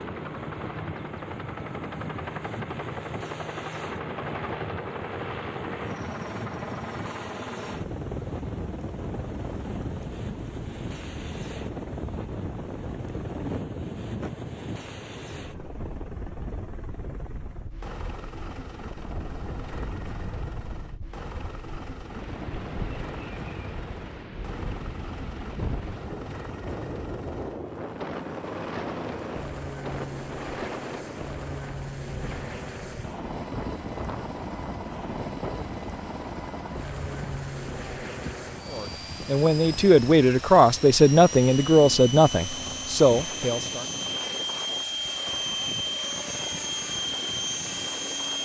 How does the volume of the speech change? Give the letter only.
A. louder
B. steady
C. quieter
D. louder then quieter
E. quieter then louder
B.